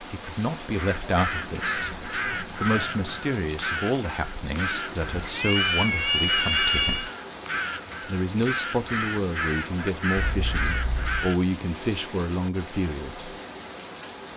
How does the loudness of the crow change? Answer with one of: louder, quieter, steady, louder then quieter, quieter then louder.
steady.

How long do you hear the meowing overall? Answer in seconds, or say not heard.
5 s.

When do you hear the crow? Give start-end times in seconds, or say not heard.
0.1-11.4.